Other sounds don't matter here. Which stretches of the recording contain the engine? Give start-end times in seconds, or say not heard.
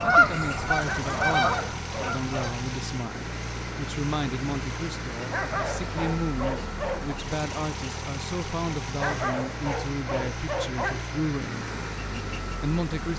0.0-13.1.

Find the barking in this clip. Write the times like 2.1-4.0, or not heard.
0.8-2.3, 5.3-7.2, 8.9-11.2.